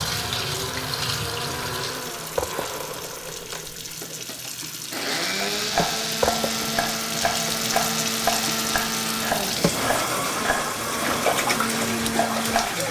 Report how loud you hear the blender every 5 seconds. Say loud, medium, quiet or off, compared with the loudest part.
medium, loud, loud.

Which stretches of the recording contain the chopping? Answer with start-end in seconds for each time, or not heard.
5.5-12.8.